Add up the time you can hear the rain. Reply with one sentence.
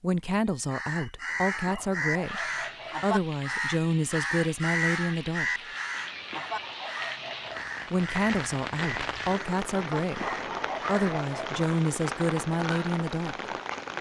The rain can be heard for 12 seconds in total.